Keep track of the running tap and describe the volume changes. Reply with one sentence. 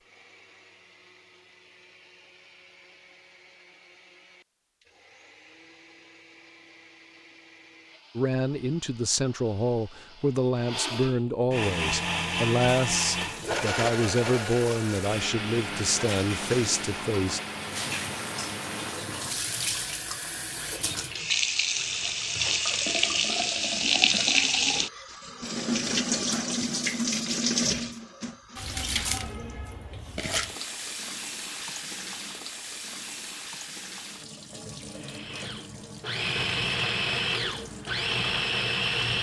The volume of the running tap goes up, then down.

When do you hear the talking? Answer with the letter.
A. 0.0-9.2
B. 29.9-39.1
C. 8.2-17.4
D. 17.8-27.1
C.